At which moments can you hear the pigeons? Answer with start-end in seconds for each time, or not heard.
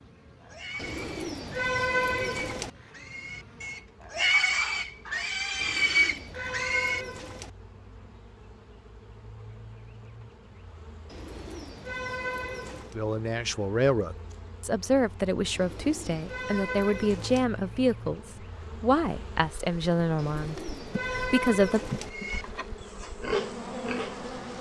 0.8-2.7, 5.5-7.5, 11.1-12.9, 15.5-17.4, 20.1-22.1.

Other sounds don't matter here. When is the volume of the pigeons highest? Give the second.
2 s.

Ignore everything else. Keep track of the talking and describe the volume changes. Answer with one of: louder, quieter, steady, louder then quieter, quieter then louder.
steady.